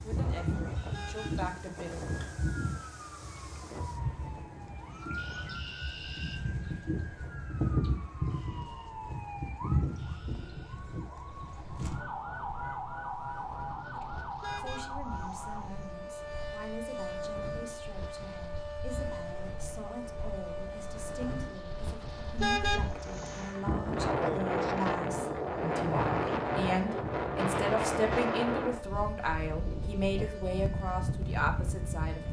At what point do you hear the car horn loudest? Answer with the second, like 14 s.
23 s.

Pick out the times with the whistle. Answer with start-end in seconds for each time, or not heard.
not heard.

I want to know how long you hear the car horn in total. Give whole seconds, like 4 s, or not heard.
3 s.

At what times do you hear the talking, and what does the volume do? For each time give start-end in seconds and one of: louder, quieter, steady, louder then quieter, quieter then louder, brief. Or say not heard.
0.0-2.0 brief
13.9-32.2 louder.